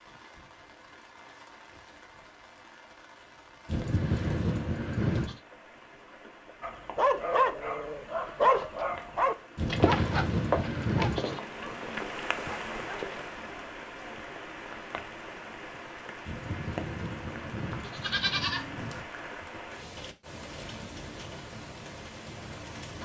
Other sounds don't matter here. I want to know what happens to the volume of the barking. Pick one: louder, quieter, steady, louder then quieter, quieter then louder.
quieter.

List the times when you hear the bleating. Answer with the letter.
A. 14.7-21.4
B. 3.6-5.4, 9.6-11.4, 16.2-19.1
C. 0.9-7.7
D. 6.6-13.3
B.